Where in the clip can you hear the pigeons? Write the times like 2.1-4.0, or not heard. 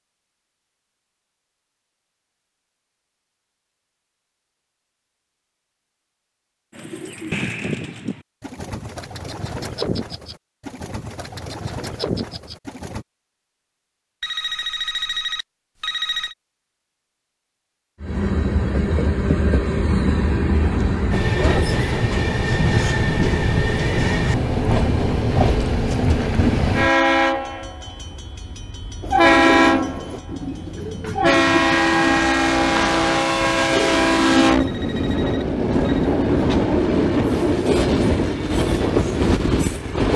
6.7-13.1, 29.0-35.1.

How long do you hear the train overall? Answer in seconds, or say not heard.
22 s.